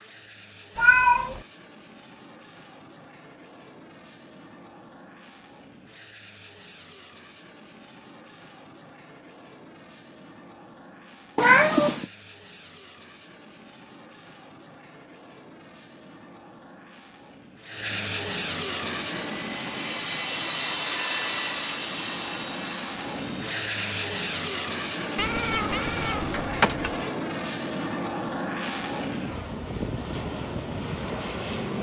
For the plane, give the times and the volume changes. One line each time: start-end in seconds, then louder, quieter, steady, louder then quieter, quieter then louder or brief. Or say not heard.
0.0-31.7 louder.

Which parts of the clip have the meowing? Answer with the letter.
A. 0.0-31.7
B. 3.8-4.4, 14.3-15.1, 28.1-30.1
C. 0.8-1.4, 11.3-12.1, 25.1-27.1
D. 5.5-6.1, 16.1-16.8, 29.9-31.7
C.